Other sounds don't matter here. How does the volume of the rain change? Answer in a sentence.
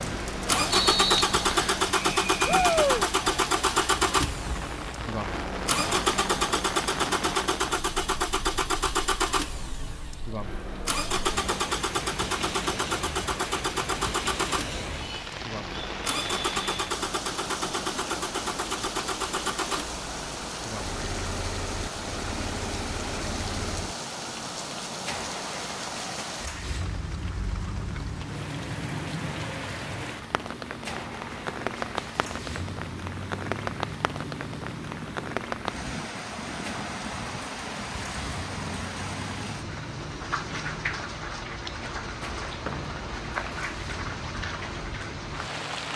The loudness of the rain stays about the same.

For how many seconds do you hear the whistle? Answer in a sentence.
You can hear the whistle for 2 seconds altogether.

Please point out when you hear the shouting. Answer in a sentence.
You can hear the shouting from 2.5 to 3.0 s.